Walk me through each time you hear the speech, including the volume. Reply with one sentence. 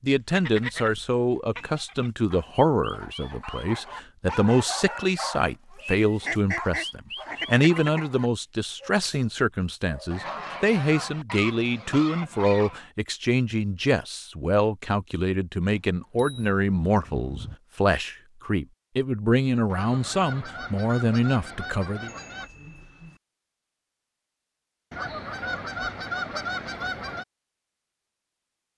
You can hear the speech from 0.0 to 22.1 s, at a steady volume.